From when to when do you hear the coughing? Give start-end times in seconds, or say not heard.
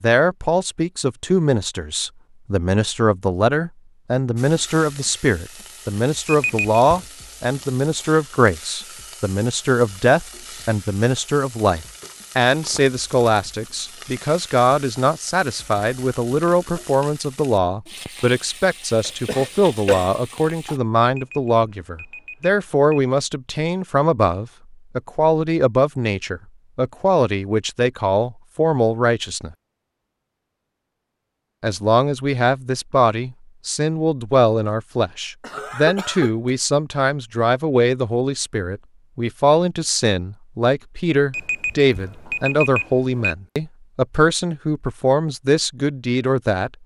19.0-20.1, 35.4-36.5.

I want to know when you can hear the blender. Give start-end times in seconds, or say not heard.
not heard.